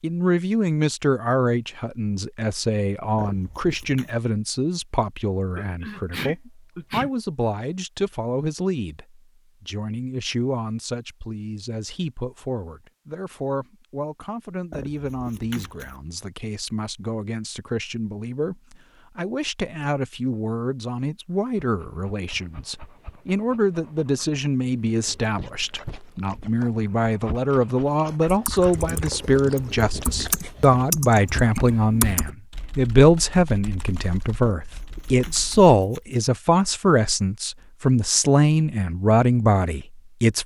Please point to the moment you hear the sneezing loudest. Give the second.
6 s.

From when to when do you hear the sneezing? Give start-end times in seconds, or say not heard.
5.5-7.1, 31.7-32.2.